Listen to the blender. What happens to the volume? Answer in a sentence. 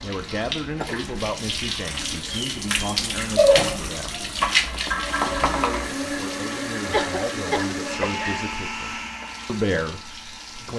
The loudness of the blender goes down.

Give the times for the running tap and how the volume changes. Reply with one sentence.
You can hear the running tap from 0.0 to 10.7 s, getting louder then quieter.